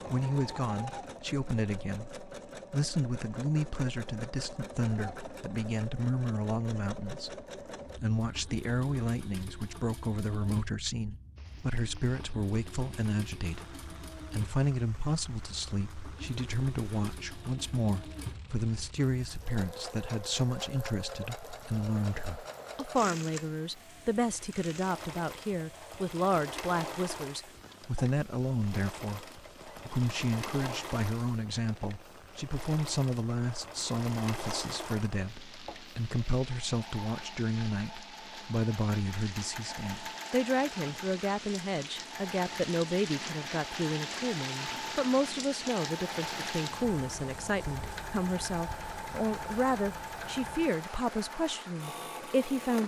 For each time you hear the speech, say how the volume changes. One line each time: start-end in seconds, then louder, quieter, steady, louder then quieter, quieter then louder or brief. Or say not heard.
0.1-52.8 steady.